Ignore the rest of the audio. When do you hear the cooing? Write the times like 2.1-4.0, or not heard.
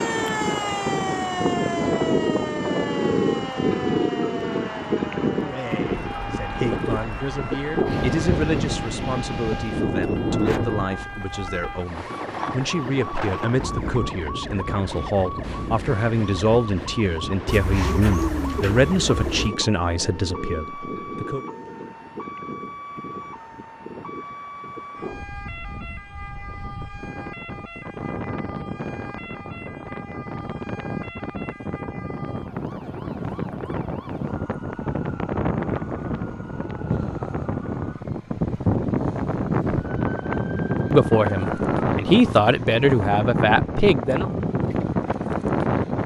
17.4-19.5.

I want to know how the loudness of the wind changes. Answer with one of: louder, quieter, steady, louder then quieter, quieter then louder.
quieter then louder.